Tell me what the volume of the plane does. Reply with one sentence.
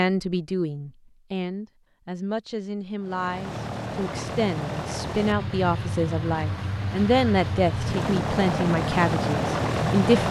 The loudness of the plane goes up.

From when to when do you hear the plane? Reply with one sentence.
The plane can be heard from 3.0 to 10.2 s.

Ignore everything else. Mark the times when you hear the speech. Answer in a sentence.
You can hear the speech from 0.0 to 10.2 s.